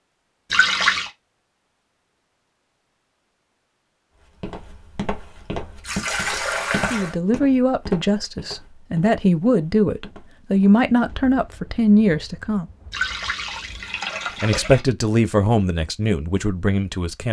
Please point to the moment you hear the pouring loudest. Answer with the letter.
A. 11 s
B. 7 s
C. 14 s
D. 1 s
D.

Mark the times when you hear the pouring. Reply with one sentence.
You can hear the pouring from 0.5 to 1.1 s, from 5.8 to 7.2 s and from 12.9 to 14.8 s.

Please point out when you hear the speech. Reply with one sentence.
The speech can be heard from 6.9 to 12.7 s and from 14.4 to 17.2 s.